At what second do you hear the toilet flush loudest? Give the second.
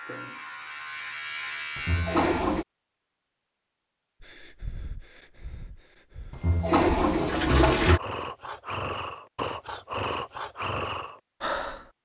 7 s.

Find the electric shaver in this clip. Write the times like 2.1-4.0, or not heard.
0.0-2.5.